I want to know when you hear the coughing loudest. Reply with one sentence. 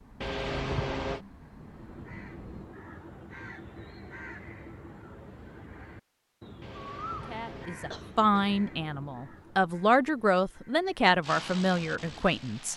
The loudest moment of the coughing is at 1 second.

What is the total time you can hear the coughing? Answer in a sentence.
The coughing can be heard for 3 seconds in total.